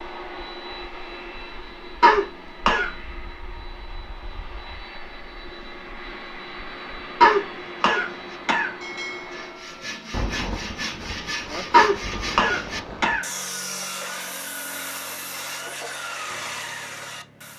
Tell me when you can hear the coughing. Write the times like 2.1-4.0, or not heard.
2.0-2.9, 7.2-8.7, 11.7-13.2.